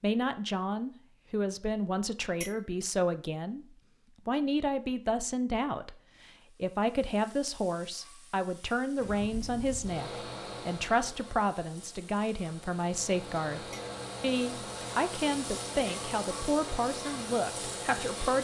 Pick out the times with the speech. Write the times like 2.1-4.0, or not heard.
0.0-3.6, 4.2-18.3.